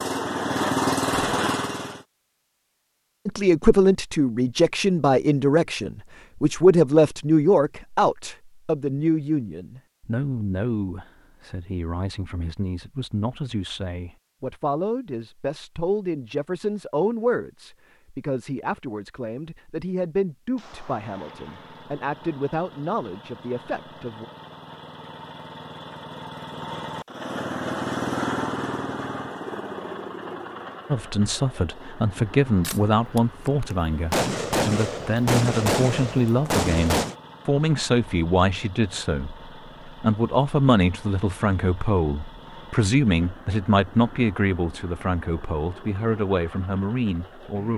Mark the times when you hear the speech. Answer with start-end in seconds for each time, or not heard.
3.2-24.2, 30.9-47.7.